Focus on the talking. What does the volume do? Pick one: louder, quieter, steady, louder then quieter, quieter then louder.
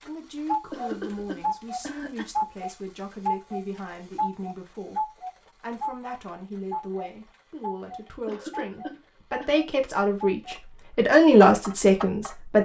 louder.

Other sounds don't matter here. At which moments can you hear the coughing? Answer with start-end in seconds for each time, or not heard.
0.7-2.2, 8.2-9.6.